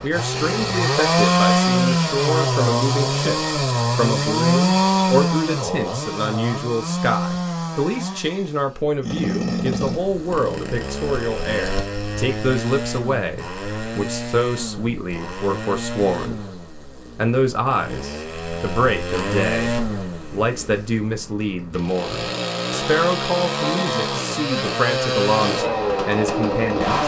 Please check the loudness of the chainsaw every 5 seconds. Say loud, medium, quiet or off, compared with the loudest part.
loud, medium, medium, medium, medium, loud.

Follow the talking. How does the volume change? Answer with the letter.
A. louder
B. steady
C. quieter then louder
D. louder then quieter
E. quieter
B.